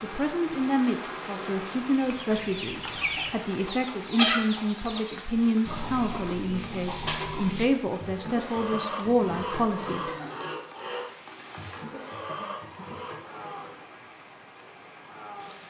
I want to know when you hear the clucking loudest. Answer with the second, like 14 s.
4 s.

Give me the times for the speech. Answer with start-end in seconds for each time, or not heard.
0.0-10.1.